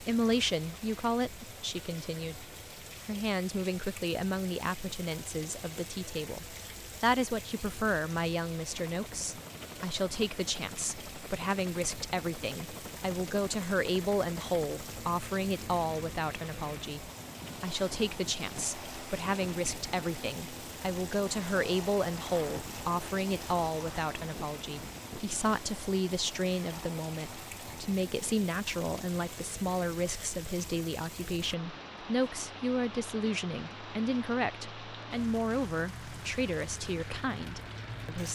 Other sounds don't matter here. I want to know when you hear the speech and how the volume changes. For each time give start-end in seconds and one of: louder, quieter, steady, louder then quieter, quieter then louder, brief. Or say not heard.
0.0-38.3 steady.